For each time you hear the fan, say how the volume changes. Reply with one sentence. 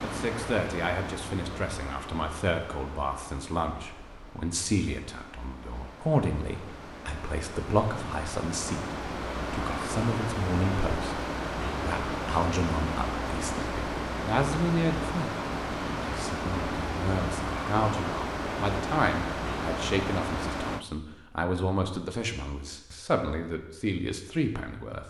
You can hear the fan from 0.0 to 20.9 s, getting louder.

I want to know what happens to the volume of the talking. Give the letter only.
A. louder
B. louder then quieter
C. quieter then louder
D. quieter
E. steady
E.